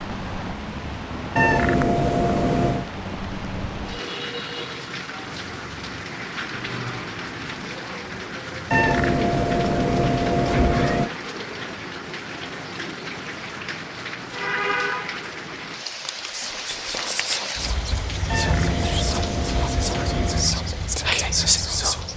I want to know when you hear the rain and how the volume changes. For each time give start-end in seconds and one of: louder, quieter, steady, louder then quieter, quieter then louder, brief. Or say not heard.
0.0-22.1 steady.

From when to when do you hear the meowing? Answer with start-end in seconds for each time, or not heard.
1.4-2.9, 8.7-11.1, 18.3-20.6.